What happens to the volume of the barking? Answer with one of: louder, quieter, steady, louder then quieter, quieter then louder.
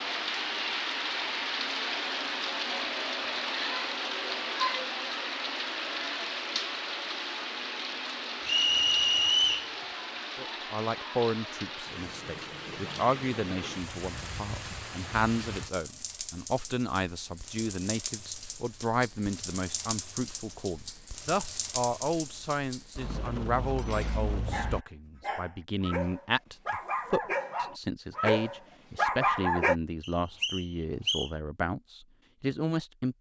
louder.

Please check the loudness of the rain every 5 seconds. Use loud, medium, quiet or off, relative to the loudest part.
loud, loud, medium, medium, medium, off, off.